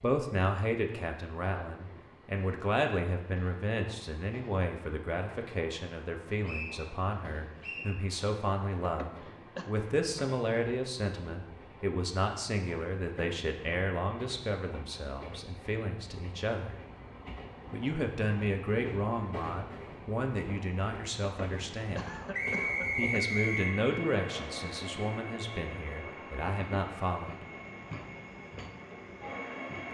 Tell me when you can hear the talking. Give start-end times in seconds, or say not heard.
0.0-16.8, 17.7-22.2, 22.9-27.4.